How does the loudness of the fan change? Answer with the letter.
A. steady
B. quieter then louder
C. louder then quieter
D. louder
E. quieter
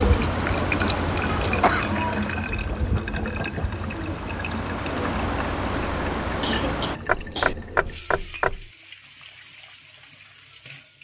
B.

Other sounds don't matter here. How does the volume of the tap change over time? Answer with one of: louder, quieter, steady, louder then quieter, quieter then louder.
quieter.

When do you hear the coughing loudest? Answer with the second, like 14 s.
2 s.